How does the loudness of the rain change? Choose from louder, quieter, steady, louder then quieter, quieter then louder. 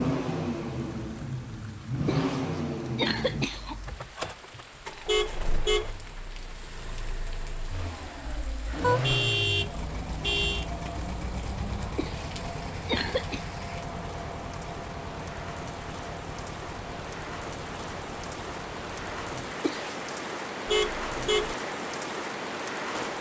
louder.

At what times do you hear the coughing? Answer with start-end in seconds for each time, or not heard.
2.0-3.8, 11.9-13.4, 19.6-20.1.